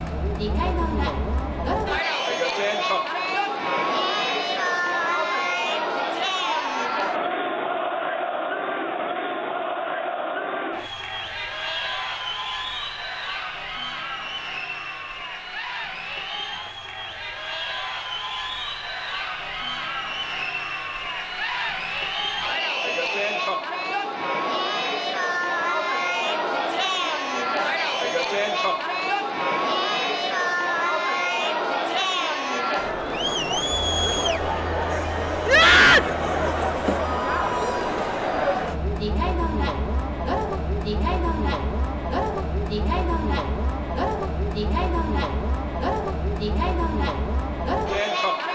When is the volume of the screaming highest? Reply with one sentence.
The volume of the screaming peaks at 36 seconds.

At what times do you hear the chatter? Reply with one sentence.
You can hear the chatter from 0.0 to 48.5 s.